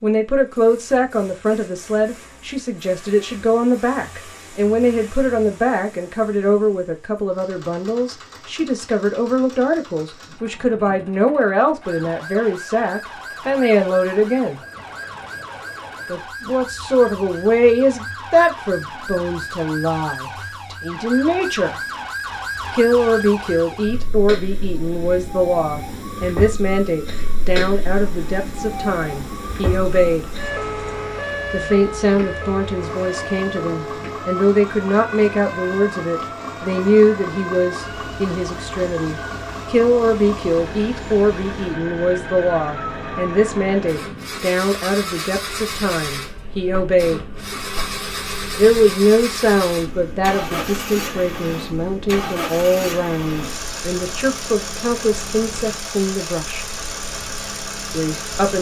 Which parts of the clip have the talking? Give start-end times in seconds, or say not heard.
0.0-14.6, 16.1-21.8, 22.7-30.3, 31.5-47.2, 48.5-56.6, 57.9-58.5.